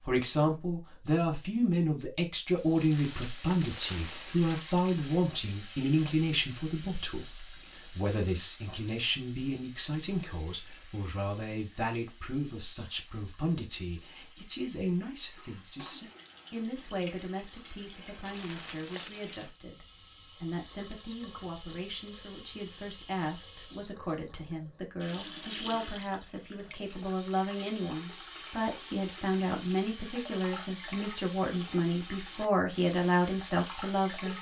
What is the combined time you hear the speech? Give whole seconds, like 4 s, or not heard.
34 s.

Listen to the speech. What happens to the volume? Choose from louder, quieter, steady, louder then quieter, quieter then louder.
quieter then louder.